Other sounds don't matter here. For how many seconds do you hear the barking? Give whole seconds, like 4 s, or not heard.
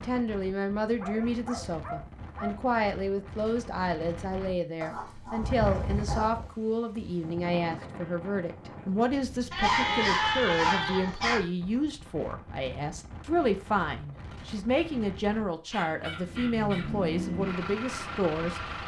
6 s.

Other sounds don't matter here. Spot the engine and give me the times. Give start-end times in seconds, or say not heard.
15.7-18.8.